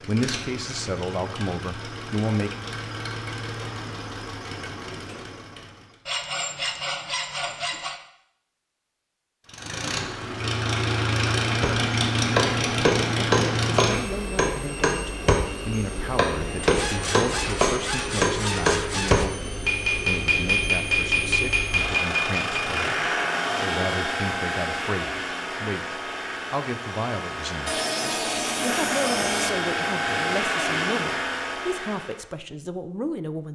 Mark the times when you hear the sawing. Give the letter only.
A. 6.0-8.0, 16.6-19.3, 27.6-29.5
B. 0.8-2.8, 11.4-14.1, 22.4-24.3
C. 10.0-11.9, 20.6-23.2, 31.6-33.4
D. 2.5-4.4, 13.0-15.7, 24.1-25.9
A.